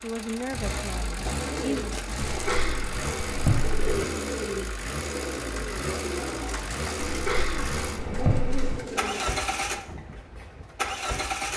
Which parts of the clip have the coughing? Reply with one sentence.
You can hear the coughing from 2.2 to 4.0 s and from 7.0 to 8.8 s.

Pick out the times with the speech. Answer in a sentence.
The speech can be heard from 0.0 to 1.9 s.